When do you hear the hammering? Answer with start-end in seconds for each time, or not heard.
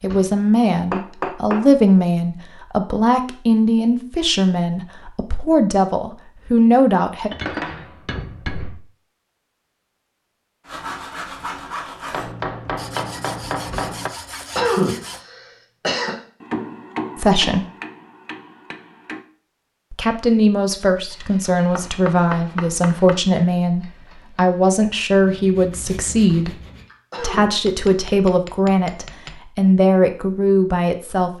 0.9-1.7, 7.3-8.8, 12.1-14.1, 16.4-19.2, 21.8-23.2, 27.5-29.4.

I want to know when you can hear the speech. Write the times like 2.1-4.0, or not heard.
0.0-7.3, 17.1-17.6, 19.9-26.6, 27.2-31.3.